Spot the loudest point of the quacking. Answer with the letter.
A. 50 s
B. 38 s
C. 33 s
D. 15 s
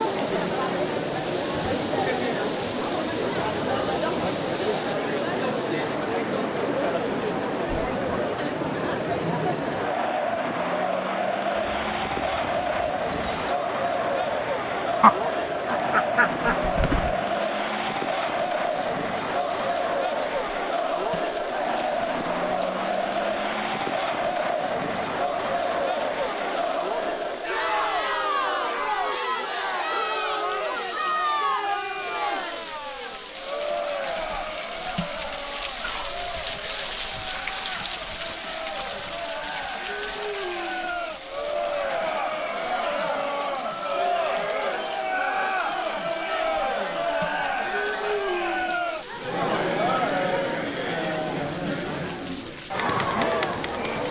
D.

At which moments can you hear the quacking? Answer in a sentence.
You can hear the quacking from 15.0 to 17.4 s.